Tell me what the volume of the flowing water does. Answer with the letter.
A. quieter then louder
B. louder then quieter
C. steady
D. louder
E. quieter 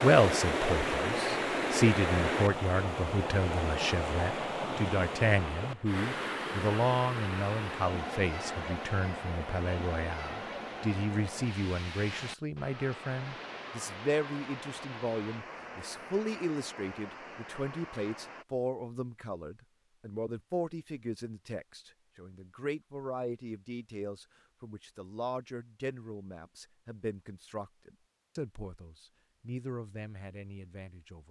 E.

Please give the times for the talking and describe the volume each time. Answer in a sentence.
The talking can be heard from 0.0 to 31.2 s, getting quieter.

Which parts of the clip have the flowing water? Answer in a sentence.
You can hear the flowing water from 0.0 to 18.4 s.